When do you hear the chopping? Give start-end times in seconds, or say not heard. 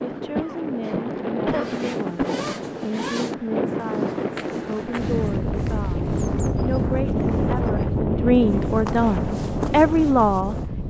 not heard.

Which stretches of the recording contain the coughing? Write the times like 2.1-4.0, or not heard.
0.3-2.4.